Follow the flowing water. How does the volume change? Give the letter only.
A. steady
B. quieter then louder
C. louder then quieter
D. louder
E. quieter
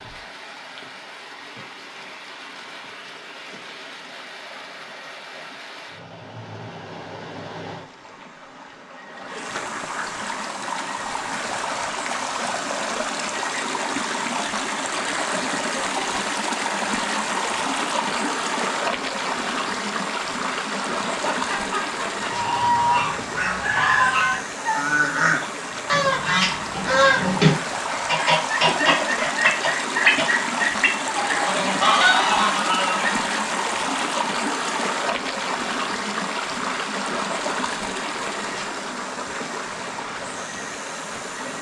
D.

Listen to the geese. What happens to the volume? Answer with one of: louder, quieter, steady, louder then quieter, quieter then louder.
steady.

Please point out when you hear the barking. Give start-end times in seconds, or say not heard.
not heard.